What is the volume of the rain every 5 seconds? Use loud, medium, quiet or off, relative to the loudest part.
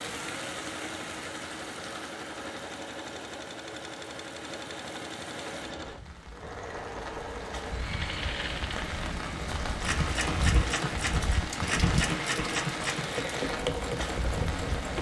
medium, medium, loud.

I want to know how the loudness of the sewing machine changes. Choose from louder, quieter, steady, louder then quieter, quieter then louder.
louder.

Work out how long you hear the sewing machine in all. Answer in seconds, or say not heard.
15 s.